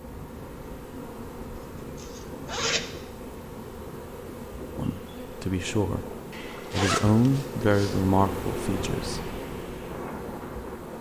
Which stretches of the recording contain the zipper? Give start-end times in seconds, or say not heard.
1.9-2.8, 6.3-8.0.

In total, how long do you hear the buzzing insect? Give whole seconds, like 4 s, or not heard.
11 s.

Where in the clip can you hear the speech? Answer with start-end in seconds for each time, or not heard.
4.8-6.0, 6.7-9.2.